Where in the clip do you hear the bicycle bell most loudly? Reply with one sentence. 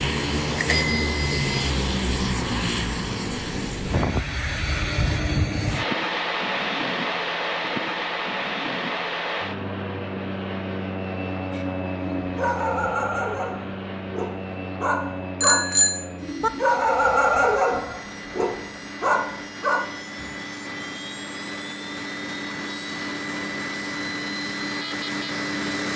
The volume of the bicycle bell peaks at 16 seconds.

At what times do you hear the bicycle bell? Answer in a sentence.
The bicycle bell can be heard from 0.6 to 1.5 s and from 15.4 to 16.5 s.